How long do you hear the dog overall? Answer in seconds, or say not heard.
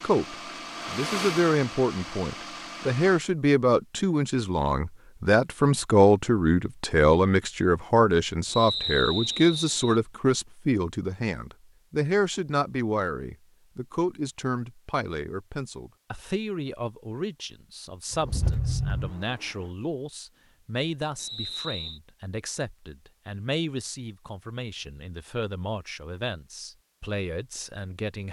not heard.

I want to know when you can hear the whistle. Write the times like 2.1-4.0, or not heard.
8.4-10.0, 21.1-22.0.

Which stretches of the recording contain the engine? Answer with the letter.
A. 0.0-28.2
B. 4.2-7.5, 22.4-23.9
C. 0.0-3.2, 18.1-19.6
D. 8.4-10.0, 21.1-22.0
C.